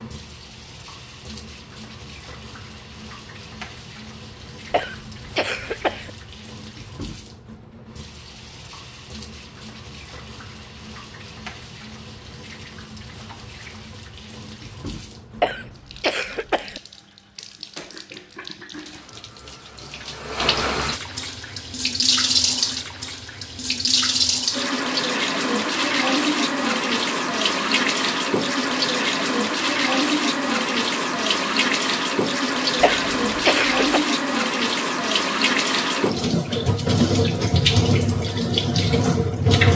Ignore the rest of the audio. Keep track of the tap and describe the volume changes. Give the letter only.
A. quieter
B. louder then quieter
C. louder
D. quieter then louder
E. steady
C.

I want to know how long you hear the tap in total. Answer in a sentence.
The tap can be heard for 40 seconds in total.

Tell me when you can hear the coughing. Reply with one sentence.
The coughing can be heard from 4.7 to 6.1 s, from 15.4 to 16.8 s and from 32.8 to 34.0 s.